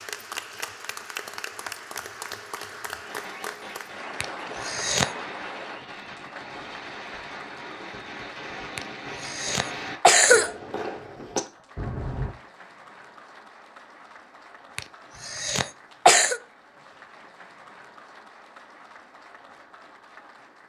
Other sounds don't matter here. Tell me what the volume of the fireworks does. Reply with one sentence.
The loudness of the fireworks goes up.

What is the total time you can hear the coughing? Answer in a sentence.
The coughing can be heard for 4 seconds in total.